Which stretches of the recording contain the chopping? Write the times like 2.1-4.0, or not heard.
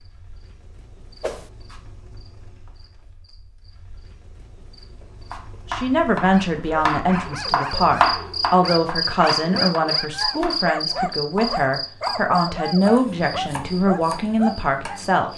5.3-14.9.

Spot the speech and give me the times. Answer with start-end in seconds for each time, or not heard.
5.7-15.3.